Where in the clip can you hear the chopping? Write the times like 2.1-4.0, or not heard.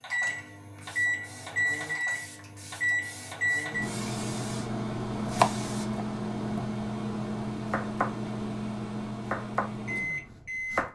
5.2-6.7, 7.7-8.1, 9.2-10.8.